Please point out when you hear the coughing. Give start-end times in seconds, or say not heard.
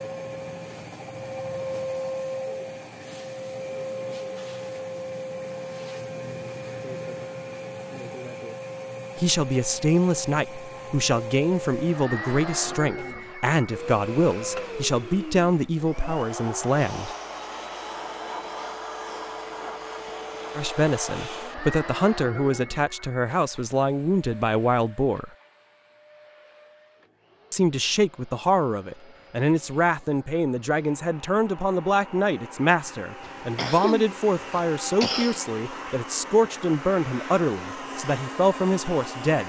33.2-35.5.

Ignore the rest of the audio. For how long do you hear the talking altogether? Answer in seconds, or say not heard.
25 s.